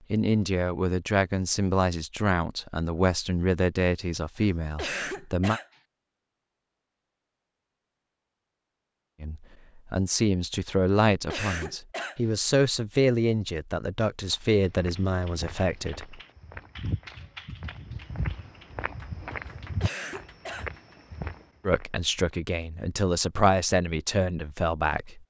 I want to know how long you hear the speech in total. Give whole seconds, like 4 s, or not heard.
16 s.